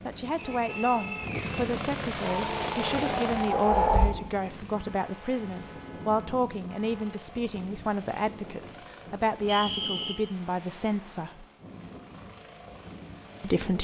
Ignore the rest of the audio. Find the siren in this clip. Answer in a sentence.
The siren can be heard from 2.2 to 4.0 s.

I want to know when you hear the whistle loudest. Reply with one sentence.
The volume of the whistle peaks at 10 seconds.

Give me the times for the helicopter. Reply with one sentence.
You can hear the helicopter from 0.0 to 13.7 s.